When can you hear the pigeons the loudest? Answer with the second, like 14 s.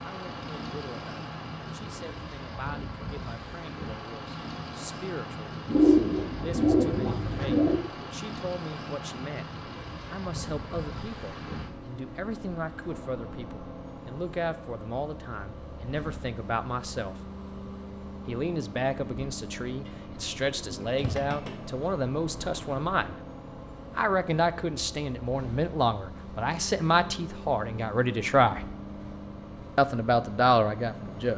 6 s.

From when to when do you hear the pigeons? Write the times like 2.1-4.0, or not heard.
5.7-7.8, 19.9-21.6.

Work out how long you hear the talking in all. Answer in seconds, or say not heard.
28 s.